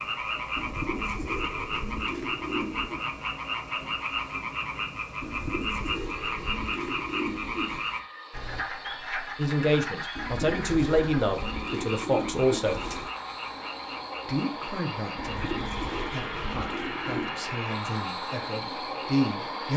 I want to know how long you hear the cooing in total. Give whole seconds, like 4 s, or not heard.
10 s.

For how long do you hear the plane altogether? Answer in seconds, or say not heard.
20 s.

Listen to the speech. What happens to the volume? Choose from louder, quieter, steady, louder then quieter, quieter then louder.
quieter then louder.